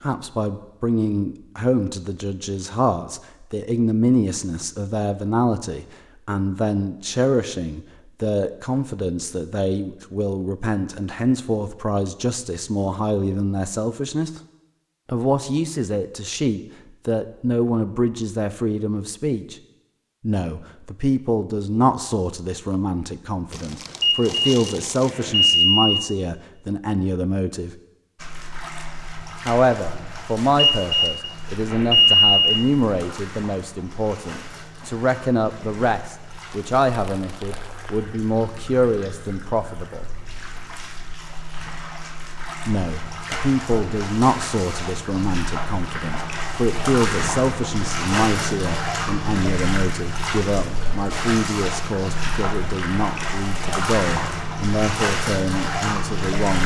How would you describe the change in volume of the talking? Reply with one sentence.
The loudness of the talking stays about the same.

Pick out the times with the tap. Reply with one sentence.
The tap can be heard from 28.1 to 56.6 s.